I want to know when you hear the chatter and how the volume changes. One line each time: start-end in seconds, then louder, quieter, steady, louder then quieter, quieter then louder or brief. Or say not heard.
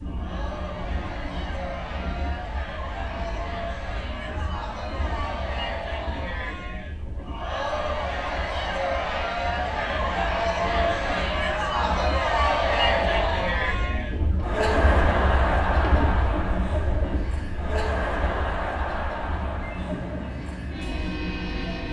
0.0-21.8 louder then quieter.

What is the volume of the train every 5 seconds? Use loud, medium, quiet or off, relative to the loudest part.
medium, medium, loud, loud, loud.